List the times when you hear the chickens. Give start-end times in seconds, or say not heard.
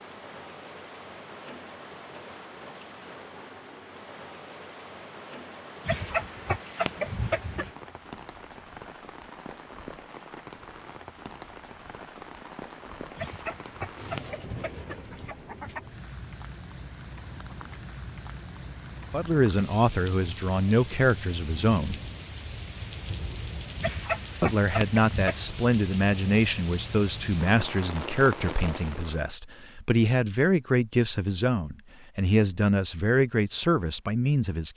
5.8-7.7, 13.2-15.8, 23.8-25.4.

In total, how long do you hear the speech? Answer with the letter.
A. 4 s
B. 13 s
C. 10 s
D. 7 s
B.